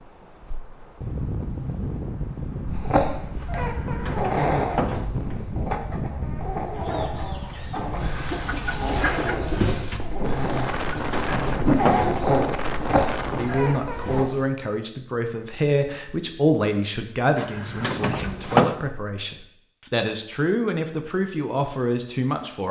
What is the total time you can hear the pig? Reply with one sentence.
You can't hear the pig here.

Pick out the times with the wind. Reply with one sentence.
The wind can be heard from 0.0 to 13.6 s.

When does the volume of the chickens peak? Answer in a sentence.
The volume of the chickens peaks at 10 seconds.